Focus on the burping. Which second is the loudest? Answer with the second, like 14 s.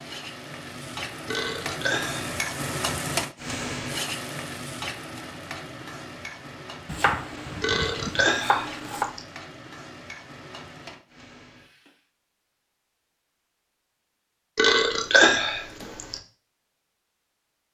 15 s.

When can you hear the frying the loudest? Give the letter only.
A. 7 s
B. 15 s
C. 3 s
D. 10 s
C.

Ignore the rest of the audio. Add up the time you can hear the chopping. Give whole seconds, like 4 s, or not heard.
2 s.